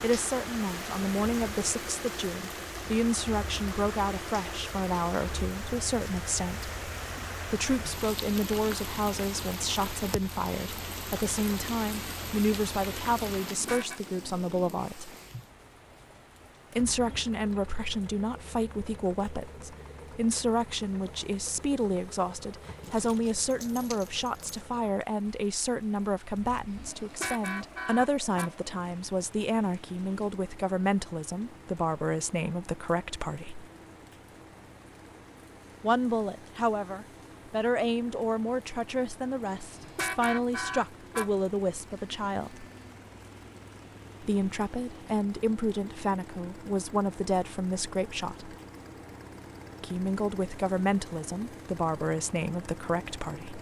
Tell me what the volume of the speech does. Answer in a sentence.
The volume of the speech stays about the same.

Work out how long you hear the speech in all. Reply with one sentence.
The speech can be heard for 46 seconds in total.